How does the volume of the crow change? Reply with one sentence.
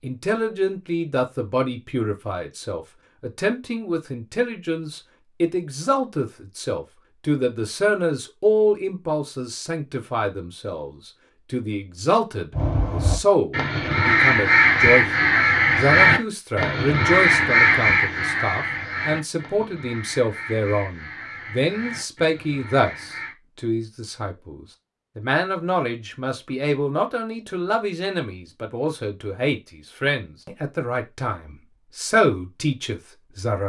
The loudness of the crow goes down.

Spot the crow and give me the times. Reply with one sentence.
You can hear the crow from 12.5 to 23.4 s.